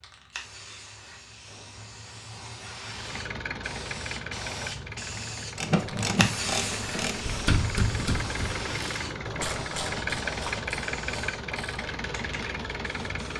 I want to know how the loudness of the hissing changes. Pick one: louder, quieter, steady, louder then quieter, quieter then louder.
louder then quieter.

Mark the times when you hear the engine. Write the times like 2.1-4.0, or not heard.
2.9-13.3.